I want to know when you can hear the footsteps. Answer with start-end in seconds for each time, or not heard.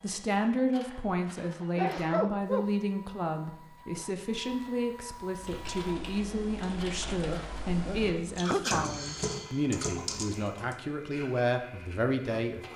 not heard.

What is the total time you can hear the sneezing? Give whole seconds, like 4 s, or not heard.
3 s.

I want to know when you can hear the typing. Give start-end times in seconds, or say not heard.
5.3-10.8.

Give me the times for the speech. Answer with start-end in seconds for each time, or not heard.
0.0-12.7.